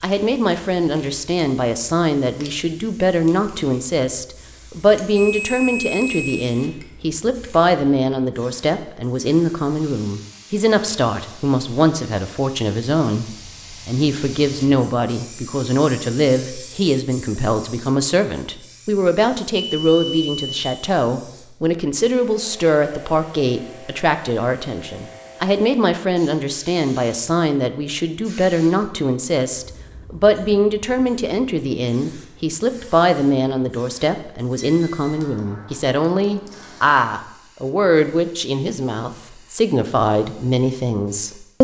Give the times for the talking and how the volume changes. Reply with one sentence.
You can hear the talking from 0.0 to 41.5 s, at a steady volume.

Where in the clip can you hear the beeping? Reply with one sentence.
You can hear the beeping from 5.2 to 6.5 s, from 19.5 to 20.7 s and from 34.6 to 35.1 s.